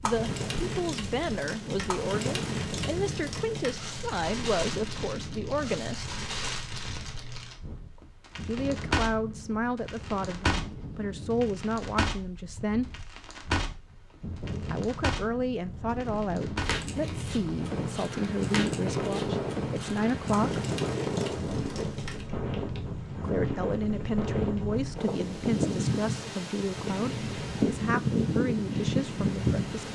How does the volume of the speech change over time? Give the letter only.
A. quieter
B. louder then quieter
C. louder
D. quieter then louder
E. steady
E.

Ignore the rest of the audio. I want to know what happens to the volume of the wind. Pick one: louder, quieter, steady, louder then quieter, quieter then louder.
louder.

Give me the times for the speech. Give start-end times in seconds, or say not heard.
0.0-6.2, 8.4-12.9, 14.7-20.6, 23.2-29.8.